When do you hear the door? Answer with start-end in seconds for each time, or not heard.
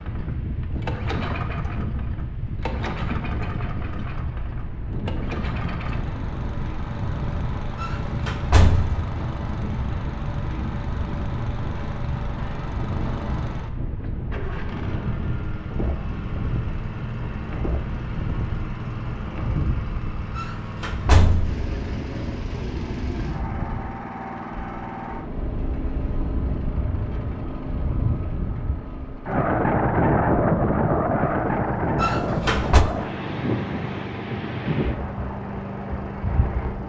7.8-9.1, 20.4-21.6, 31.9-32.9.